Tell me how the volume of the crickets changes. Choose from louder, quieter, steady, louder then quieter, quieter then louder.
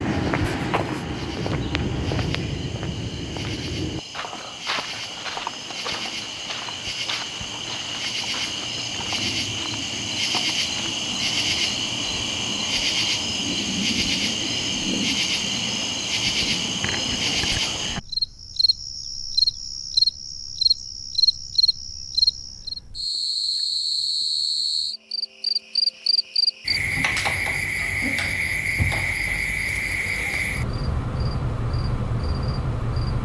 louder.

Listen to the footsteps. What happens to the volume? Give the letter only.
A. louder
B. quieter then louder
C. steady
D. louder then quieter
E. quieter
E.